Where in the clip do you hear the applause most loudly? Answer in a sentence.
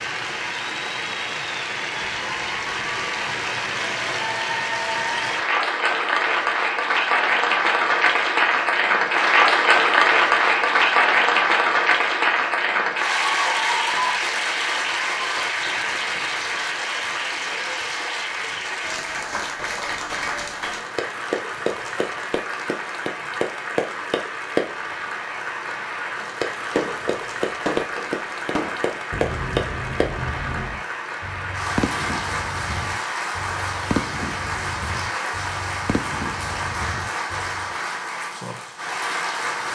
The volume of the applause peaks at 10 seconds.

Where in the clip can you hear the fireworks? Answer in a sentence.
The fireworks can be heard from 26.8 to 37.7 s.